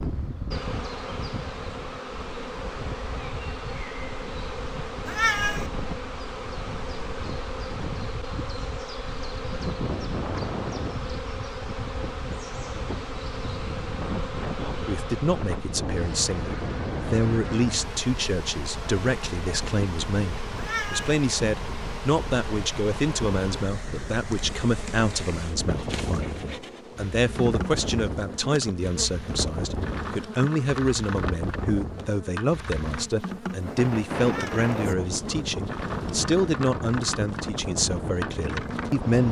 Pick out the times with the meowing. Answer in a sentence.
The meowing can be heard from 5.0 to 5.7 s, from 20.6 to 21.2 s and from 34.2 to 34.7 s.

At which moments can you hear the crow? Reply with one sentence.
The crow can't be heard in this clip.